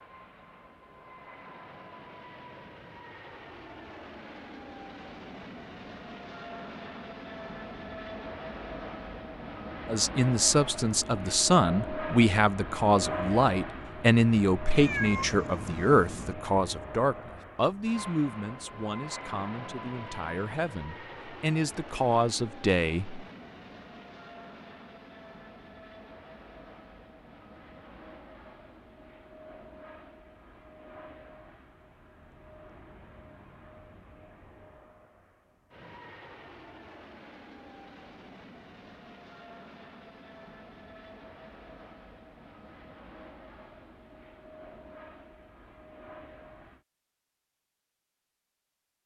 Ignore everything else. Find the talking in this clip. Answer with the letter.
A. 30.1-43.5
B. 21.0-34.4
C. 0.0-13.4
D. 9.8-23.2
D.